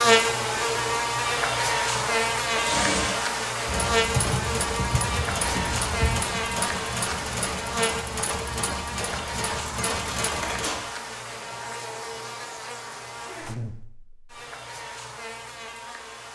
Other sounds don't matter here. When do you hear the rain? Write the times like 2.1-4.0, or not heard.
not heard.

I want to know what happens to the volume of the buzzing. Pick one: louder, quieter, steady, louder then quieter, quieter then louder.
quieter.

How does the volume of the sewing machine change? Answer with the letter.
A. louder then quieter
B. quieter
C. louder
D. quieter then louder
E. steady
E.